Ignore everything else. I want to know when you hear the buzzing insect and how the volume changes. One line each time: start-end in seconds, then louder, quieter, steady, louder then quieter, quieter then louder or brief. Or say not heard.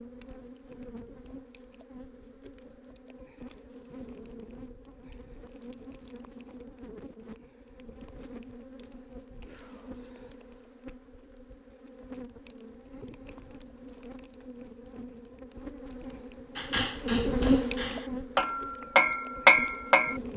0.0-20.3 louder.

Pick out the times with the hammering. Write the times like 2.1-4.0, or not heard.
16.6-20.3.